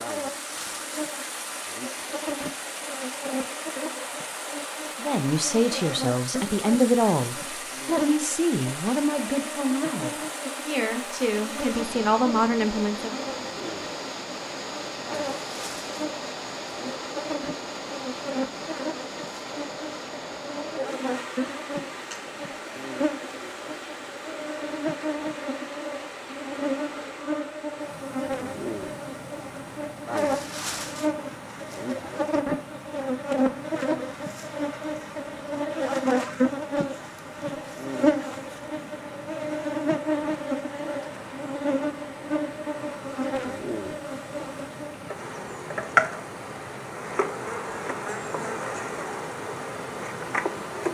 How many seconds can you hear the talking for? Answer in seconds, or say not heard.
8 s.